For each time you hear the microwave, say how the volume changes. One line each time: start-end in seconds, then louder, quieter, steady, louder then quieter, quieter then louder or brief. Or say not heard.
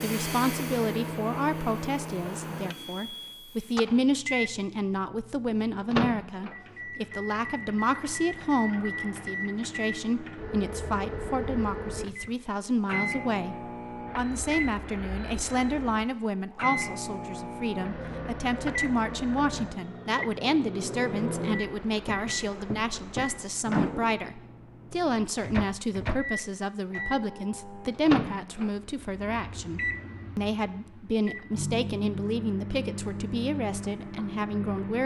0.0-35.0 steady.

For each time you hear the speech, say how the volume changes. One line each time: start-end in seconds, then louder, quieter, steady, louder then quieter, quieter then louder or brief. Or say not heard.
0.0-13.6 steady
14.2-35.0 steady.